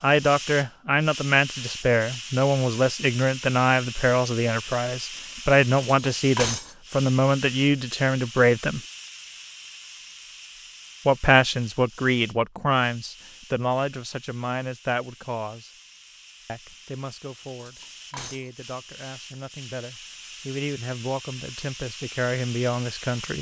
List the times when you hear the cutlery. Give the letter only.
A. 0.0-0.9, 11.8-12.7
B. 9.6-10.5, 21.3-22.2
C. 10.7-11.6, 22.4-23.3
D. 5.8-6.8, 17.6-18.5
D.